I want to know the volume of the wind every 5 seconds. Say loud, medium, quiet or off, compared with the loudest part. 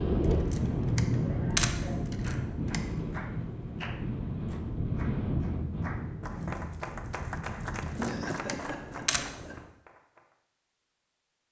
loud, medium, off.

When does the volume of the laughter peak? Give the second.
8 s.